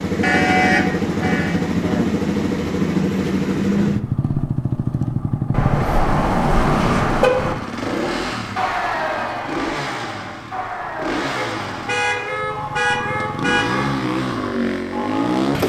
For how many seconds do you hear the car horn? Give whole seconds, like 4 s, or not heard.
6 s.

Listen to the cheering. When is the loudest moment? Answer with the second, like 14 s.
9 s.